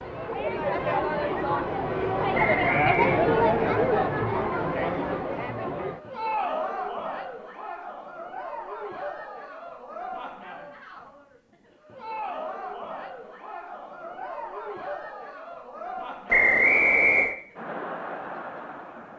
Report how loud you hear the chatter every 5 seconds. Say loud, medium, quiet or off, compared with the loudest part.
loud, medium, quiet, quiet.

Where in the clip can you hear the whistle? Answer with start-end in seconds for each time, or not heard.
2.3-3.2, 16.3-17.4.